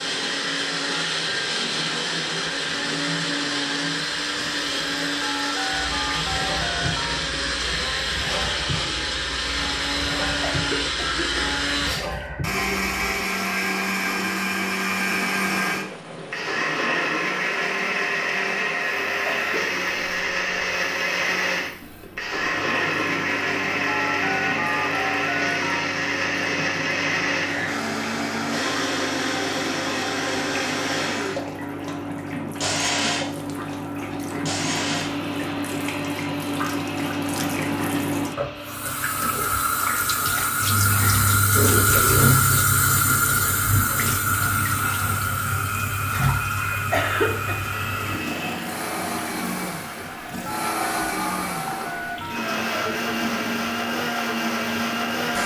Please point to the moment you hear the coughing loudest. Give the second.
47 s.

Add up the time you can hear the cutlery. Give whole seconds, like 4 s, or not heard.
not heard.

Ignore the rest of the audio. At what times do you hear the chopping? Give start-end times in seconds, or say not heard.
not heard.